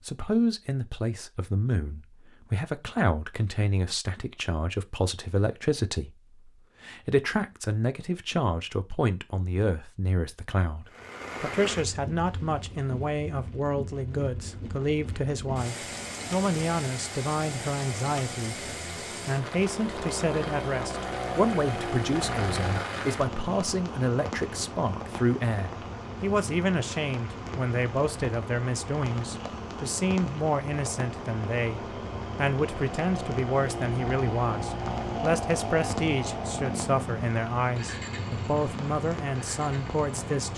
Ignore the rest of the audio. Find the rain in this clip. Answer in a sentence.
You can hear the rain from 10.8 to 40.5 s.